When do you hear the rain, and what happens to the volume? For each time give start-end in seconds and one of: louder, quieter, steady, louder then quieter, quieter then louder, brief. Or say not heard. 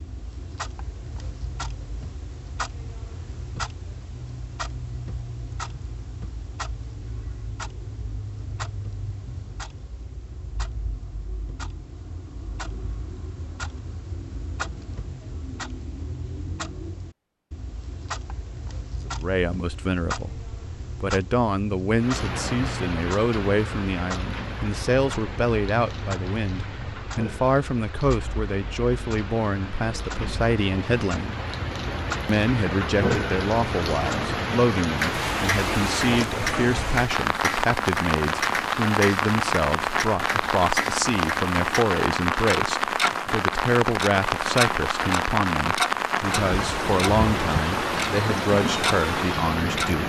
21.9-50.0 louder.